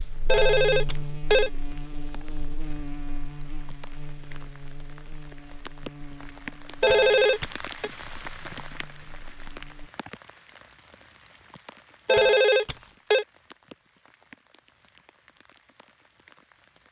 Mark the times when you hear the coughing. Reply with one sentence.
You can't hear the coughing here.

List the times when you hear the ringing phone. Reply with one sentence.
You can hear the ringing phone from 0.2 to 1.5 s, from 6.8 to 7.9 s and from 12.1 to 13.2 s.